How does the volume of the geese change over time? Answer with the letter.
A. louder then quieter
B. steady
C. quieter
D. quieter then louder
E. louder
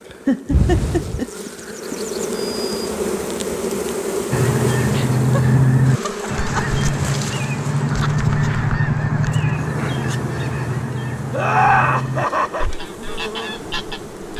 C.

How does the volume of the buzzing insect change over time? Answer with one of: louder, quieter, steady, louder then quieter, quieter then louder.
quieter.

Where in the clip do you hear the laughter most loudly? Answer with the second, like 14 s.
12 s.